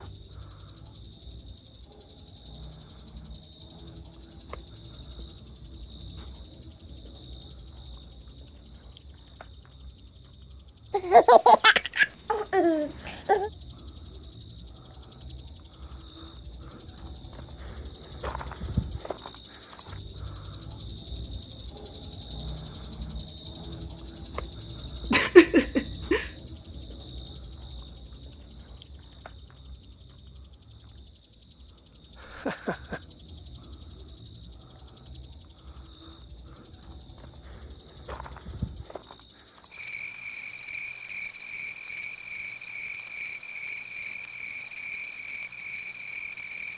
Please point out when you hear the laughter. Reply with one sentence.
The laughter can be heard from 10.9 to 13.5 s, from 25.1 to 26.2 s and from 32.1 to 33.0 s.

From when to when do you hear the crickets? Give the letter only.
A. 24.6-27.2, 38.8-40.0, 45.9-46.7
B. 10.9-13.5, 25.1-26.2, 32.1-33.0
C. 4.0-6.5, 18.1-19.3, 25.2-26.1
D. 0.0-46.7
D.